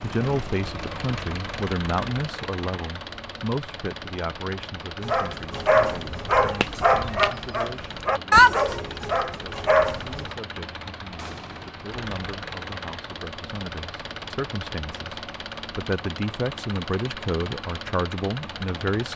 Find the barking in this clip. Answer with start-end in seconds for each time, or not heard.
5.0-10.3.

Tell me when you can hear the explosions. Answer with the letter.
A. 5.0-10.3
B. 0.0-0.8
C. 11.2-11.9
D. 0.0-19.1
C.